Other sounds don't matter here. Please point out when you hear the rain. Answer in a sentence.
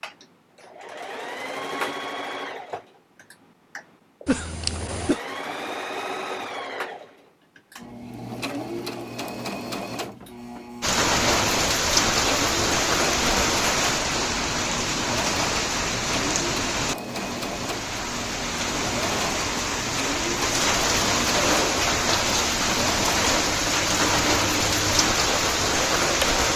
You can hear the rain from 10.8 to 26.5 s.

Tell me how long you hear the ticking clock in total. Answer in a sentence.
The ticking clock can't be heard in this clip.